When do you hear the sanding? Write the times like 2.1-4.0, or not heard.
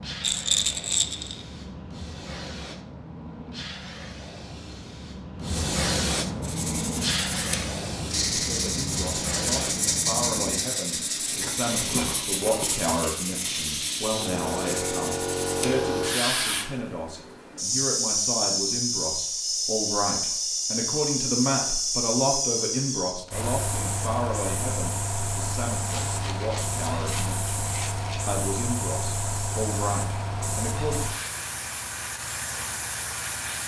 6.4-15.8.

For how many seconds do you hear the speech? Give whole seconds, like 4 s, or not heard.
23 s.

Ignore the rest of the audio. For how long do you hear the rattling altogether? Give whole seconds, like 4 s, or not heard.
5 s.